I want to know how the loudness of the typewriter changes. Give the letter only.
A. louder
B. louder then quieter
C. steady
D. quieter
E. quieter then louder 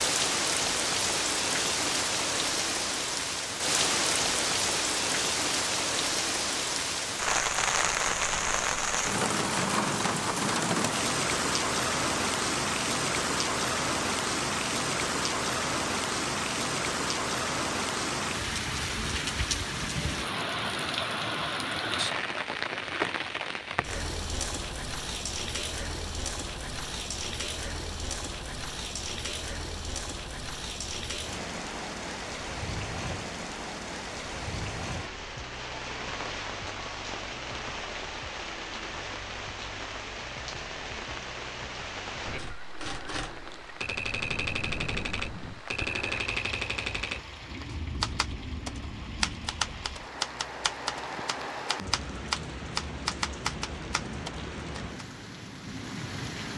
C.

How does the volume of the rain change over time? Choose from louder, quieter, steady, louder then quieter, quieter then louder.
quieter.